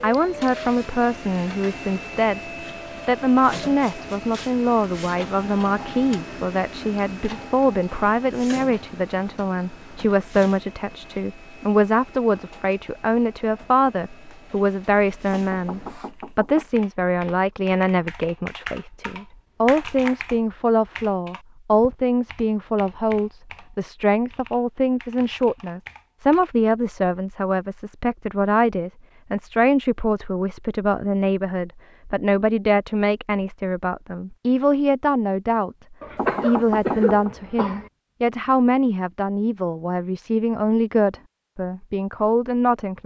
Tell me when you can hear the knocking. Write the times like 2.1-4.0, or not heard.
15.3-16.7, 36.1-37.3.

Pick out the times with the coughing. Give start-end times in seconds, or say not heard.
36.0-37.9.